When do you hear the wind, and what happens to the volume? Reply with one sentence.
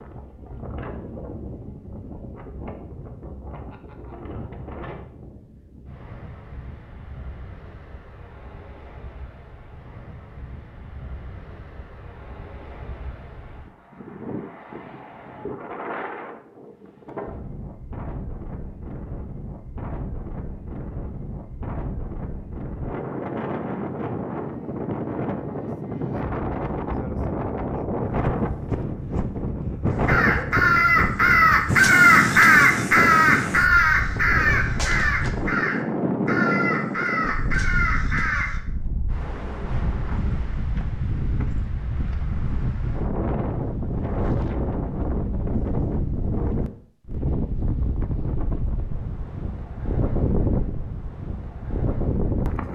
You can hear the wind from 0.0 to 52.7 s, getting louder.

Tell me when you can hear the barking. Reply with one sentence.
The barking can't be heard in this clip.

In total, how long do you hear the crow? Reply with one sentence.
The crow can be heard for 9 seconds in total.